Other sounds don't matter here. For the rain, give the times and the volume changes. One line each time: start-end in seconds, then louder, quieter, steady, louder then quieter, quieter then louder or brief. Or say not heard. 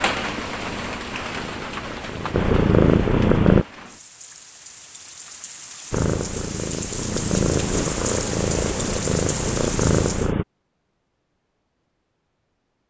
0.0-10.3 quieter then louder.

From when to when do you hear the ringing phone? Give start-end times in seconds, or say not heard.
not heard.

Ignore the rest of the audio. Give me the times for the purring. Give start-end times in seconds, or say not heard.
0.0-3.6, 5.9-10.4.